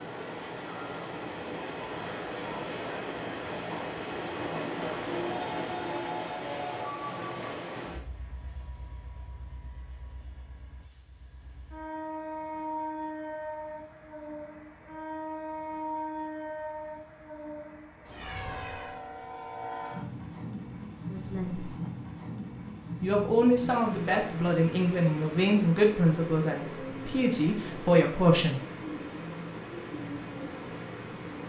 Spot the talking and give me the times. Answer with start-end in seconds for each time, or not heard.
21.1-21.7, 23.0-28.6.